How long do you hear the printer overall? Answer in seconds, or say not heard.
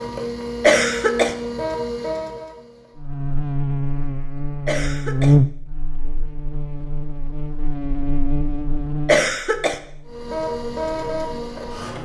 5 s.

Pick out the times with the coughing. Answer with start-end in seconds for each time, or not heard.
0.6-1.4, 4.7-5.3, 9.1-9.8.